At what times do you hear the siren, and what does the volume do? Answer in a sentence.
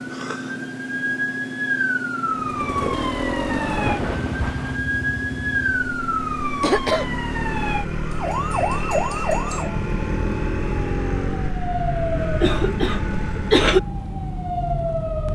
The siren can be heard from 0.0 to 15.3 s, at a steady volume.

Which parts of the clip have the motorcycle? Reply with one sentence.
The motorcycle can be heard from 2.3 to 13.7 s.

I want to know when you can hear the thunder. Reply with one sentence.
The thunder can be heard from 3.9 to 4.8 s.